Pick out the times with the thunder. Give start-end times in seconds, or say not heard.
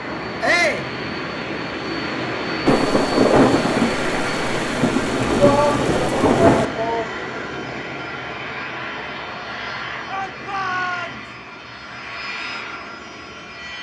2.6-6.7.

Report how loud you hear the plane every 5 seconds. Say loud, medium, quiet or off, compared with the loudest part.
loud, loud, medium.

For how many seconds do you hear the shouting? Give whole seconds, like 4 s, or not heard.
3 s.